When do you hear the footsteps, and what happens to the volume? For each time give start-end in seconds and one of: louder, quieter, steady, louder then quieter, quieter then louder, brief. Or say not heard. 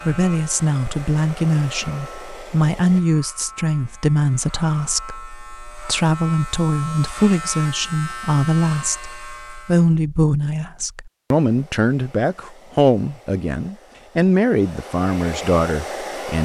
not heard.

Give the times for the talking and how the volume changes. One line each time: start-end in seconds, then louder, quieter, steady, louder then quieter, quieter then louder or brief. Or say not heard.
0.0-16.3 steady.